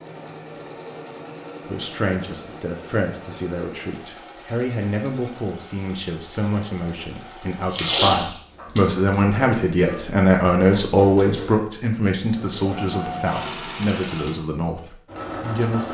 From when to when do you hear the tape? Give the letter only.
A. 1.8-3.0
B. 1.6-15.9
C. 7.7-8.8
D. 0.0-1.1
C.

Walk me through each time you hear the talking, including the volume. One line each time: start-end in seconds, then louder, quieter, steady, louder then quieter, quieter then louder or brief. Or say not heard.
1.6-15.9 louder then quieter.